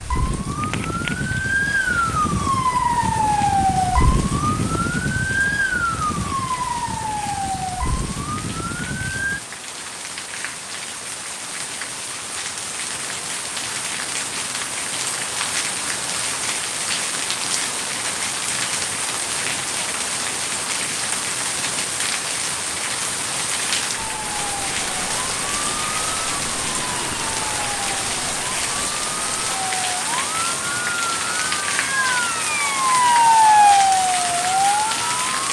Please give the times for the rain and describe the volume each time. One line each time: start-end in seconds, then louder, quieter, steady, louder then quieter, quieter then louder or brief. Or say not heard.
0.0-35.4 louder.